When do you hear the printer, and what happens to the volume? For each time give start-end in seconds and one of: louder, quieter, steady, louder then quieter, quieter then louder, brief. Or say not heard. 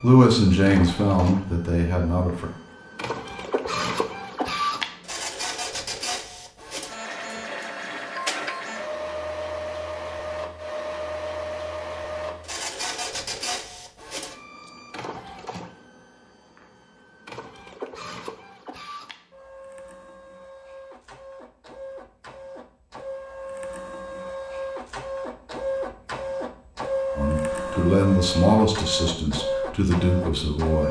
0.0-30.8 quieter then louder.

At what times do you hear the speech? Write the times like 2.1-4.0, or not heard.
0.0-2.5, 27.1-30.8.